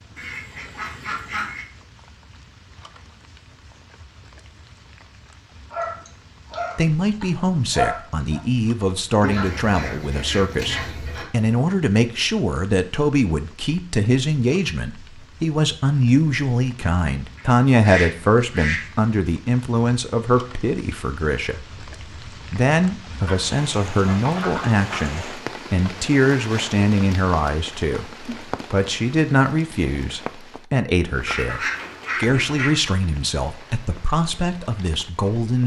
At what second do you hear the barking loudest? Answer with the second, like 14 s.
8 s.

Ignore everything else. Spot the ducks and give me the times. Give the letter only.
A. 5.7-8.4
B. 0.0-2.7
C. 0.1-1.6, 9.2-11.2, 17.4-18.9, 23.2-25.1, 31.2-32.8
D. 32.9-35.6
C.